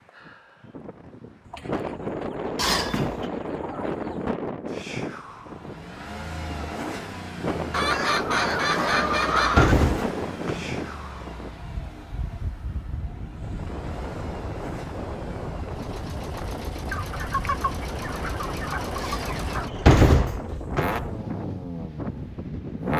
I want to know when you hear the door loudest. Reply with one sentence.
The loudest moment of the door is at 20 seconds.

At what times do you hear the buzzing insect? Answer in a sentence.
The buzzing insect can't be heard in this clip.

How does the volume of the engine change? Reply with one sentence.
The volume of the engine goes down, then up.